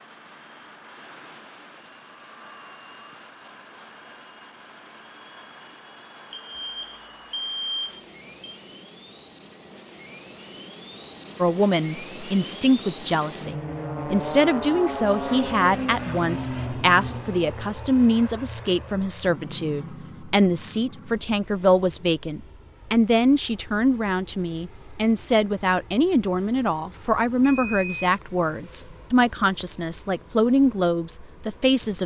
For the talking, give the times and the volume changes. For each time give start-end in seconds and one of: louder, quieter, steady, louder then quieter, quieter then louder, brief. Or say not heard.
11.4-32.0 steady.